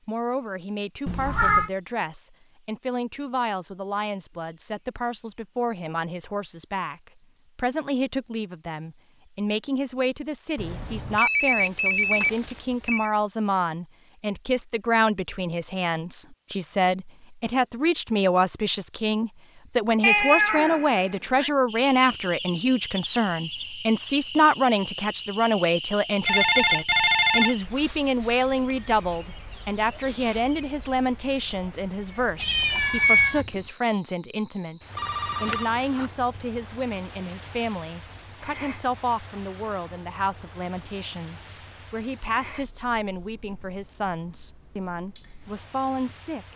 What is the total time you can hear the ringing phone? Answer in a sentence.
The ringing phone can be heard for 5 seconds in total.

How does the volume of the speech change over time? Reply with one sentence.
The loudness of the speech goes up, then down.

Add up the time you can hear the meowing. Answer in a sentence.
The meowing can be heard for 3 seconds in total.